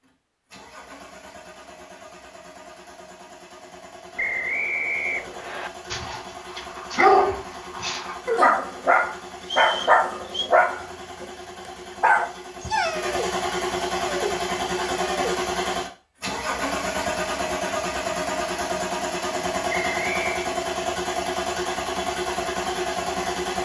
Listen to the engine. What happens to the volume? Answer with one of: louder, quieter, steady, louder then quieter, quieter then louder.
louder.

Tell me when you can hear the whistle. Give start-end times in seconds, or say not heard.
4.2-5.7, 9.4-10.5, 19.6-20.5.